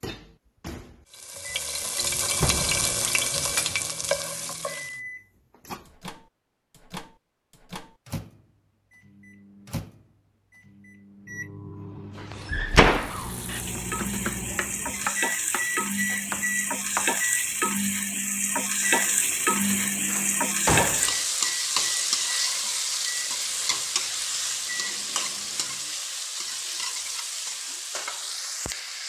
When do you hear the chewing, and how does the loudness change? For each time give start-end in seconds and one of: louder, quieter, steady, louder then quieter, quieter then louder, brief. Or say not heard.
not heard.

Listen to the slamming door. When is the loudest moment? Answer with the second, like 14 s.
13 s.